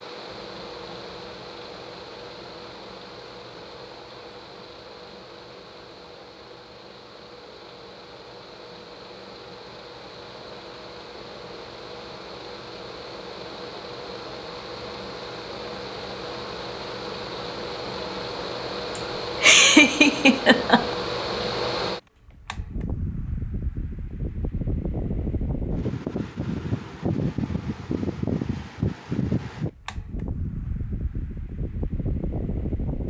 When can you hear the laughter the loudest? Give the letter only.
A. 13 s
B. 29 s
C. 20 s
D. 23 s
C.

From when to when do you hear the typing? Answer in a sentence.
You can't hear the typing here.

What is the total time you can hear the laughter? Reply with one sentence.
The laughter can be heard for 2 seconds in total.